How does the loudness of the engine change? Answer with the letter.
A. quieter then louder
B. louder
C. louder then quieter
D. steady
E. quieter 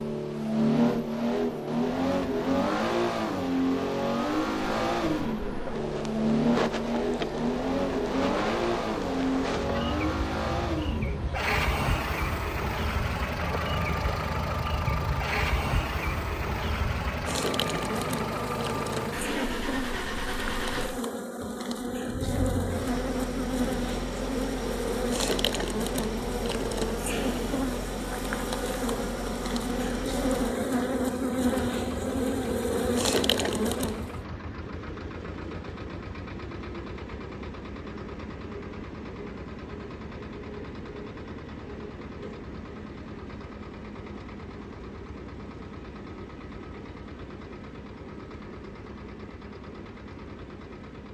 E.